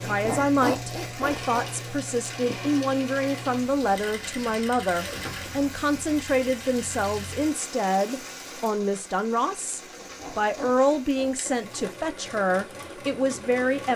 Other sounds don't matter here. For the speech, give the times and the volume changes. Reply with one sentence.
You can hear the speech from 0.0 to 13.9 s, at a steady volume.